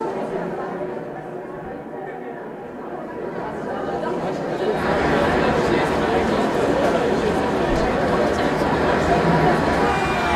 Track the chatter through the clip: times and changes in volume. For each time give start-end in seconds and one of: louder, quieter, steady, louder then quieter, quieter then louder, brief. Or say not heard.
0.0-10.3 louder.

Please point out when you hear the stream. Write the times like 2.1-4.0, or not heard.
4.7-10.3.